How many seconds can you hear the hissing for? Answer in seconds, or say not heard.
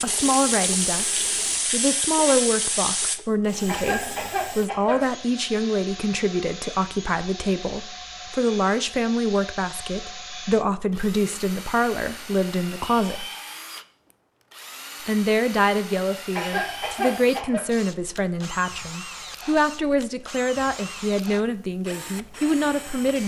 3 s.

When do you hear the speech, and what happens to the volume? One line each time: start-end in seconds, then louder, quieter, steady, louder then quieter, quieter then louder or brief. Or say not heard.
0.0-13.2 steady
15.1-23.2 steady.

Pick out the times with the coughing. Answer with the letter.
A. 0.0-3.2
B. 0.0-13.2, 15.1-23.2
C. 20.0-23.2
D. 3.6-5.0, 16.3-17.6
D.